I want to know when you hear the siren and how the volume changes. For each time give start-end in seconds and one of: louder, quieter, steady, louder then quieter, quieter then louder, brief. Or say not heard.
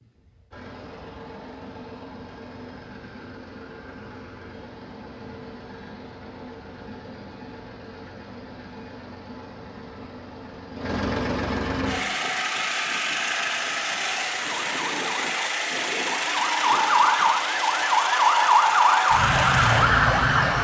14.5-20.5 louder.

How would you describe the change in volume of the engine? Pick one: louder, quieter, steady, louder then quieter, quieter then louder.
louder.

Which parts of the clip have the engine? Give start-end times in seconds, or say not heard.
0.0-20.5.